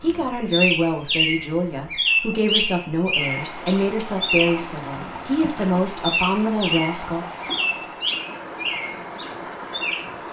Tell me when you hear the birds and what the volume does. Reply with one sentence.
You can hear the birds from 0.1 to 10.2 s, getting quieter.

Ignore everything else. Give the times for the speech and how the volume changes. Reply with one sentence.
You can hear the speech from 0.0 to 7.2 s, at a steady volume.